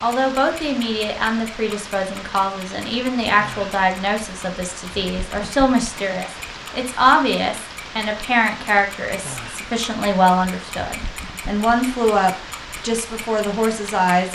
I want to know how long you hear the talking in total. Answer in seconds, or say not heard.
14 s.